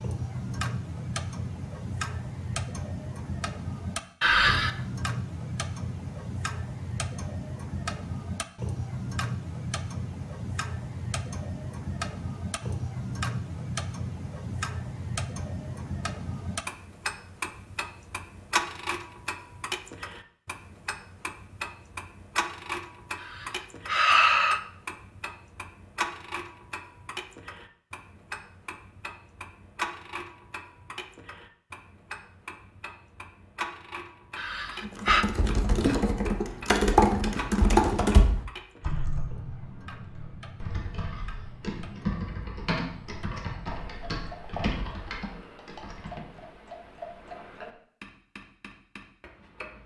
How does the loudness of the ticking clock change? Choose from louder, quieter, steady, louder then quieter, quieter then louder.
quieter.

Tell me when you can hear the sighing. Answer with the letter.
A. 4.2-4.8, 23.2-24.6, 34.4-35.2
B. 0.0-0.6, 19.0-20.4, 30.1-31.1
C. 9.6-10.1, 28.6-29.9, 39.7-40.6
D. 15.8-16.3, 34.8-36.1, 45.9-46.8
A.